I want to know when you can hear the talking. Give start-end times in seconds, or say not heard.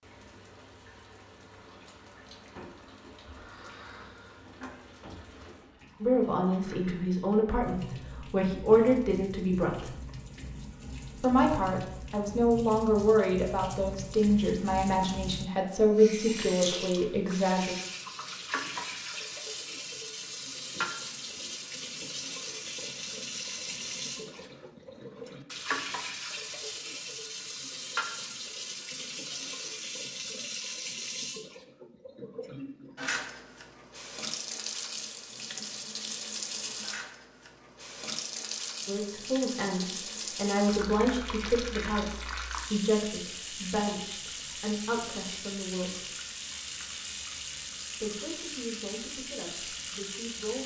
6.0-9.9, 11.2-17.8, 38.9-46.0, 48.0-50.6.